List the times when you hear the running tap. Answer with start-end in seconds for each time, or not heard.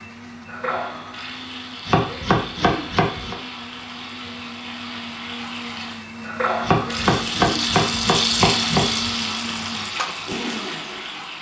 0.0-11.3.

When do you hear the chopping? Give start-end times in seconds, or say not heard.
1.9-3.4, 6.6-9.1.